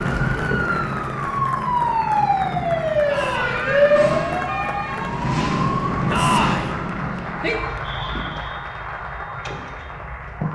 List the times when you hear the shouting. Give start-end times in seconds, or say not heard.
3.0-3.7, 6.1-6.7.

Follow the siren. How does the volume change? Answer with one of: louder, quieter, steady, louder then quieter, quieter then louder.
quieter.